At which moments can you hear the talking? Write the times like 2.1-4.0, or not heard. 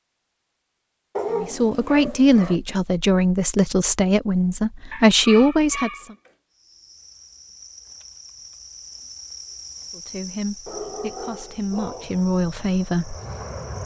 1.4-6.2, 9.9-13.2.